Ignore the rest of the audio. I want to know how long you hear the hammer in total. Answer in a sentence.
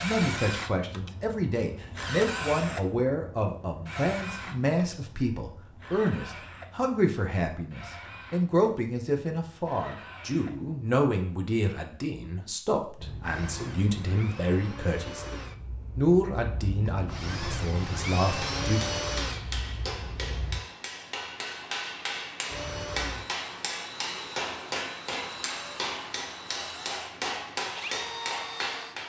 The hammer can be heard for 11 seconds in total.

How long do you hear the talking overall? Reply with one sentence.
You can hear the talking for 19 seconds altogether.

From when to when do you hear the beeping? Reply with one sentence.
You can't hear the beeping here.